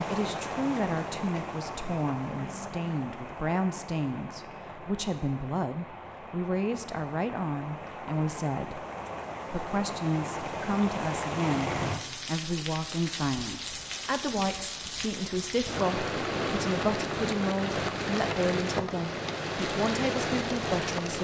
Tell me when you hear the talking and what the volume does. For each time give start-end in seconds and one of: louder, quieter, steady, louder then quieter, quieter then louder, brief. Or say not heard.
0.0-8.8 steady
9.5-21.2 steady.